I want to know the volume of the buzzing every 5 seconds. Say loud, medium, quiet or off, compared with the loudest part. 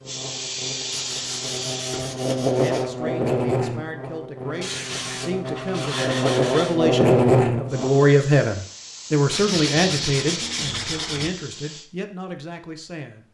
medium, loud, off.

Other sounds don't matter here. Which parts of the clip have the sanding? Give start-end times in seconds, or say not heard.
0.9-2.9, 4.6-6.8, 9.3-11.3.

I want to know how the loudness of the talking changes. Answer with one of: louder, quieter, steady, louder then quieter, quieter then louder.
louder then quieter.